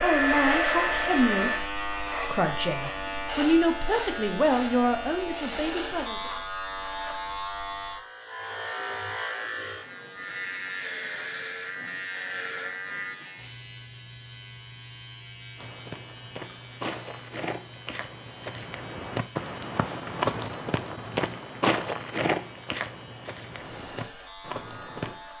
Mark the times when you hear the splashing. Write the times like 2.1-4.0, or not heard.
not heard.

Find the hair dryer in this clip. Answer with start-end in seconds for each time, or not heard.
0.0-1.6.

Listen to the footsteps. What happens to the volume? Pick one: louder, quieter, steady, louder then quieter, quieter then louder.
louder then quieter.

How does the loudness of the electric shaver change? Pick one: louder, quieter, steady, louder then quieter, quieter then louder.
quieter.